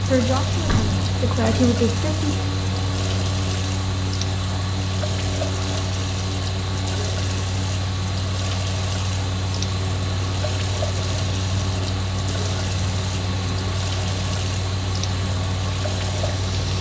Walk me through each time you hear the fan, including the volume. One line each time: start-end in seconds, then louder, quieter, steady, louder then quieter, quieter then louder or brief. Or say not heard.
0.0-16.7 steady.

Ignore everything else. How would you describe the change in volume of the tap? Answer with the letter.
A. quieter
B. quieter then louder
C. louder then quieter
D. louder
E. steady
E.